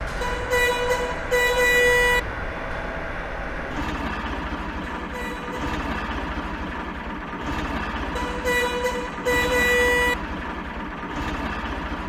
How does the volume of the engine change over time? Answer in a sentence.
The volume of the engine stays about the same.